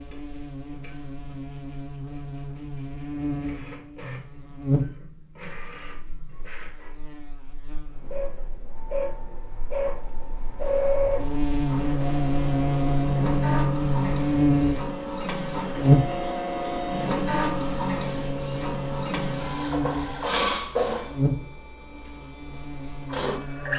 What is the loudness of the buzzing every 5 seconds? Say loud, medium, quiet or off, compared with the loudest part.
medium, quiet, loud, loud, medium.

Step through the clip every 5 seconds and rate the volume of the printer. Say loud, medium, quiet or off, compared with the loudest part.
quiet, medium, loud, loud, loud.